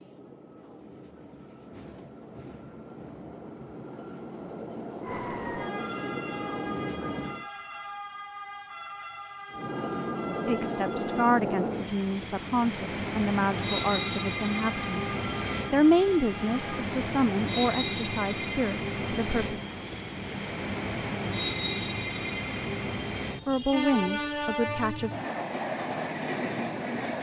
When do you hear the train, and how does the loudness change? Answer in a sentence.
The train can be heard from 0.0 to 7.5 s, getting louder; and from 9.5 to 27.1 s, at a steady volume.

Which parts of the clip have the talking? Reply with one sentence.
The talking can be heard from 10.4 to 19.6 s and from 23.4 to 25.1 s.